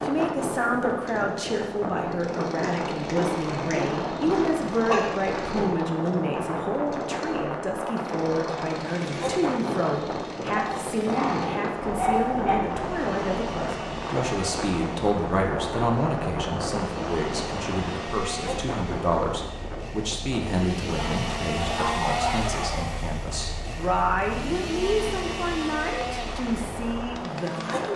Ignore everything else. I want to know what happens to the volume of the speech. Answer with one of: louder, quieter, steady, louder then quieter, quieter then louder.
steady.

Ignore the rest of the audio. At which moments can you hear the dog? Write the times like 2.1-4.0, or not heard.
2.6-5.1, 10.6-12.6, 20.9-22.9.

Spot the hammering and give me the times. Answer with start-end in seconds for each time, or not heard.
not heard.